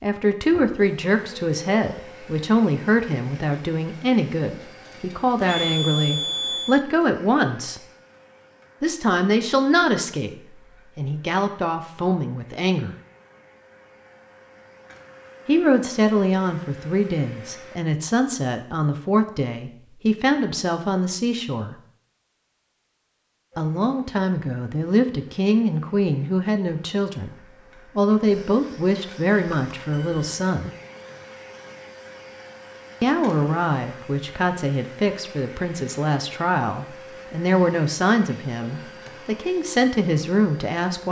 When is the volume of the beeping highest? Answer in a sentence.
The volume of the beeping peaks at 6 seconds.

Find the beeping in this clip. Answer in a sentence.
You can hear the beeping from 5.4 to 6.8 s and from 29.4 to 30.4 s.